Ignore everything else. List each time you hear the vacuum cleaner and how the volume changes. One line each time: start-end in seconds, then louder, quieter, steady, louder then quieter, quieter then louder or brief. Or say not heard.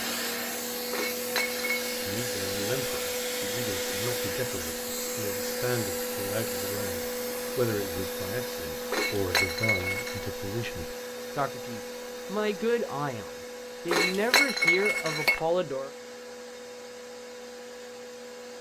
0.0-18.5 quieter.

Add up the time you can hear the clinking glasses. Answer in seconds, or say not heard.
4 s.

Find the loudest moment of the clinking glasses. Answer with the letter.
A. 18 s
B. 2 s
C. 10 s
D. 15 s
D.